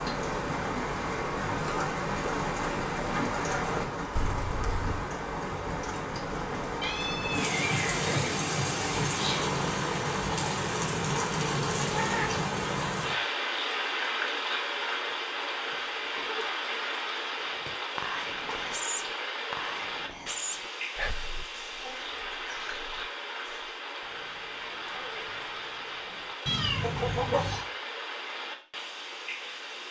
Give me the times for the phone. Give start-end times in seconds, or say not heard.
not heard.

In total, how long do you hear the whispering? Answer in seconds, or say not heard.
6 s.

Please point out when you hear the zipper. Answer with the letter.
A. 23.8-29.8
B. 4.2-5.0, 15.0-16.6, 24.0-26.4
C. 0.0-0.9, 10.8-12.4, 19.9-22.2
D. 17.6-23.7
B.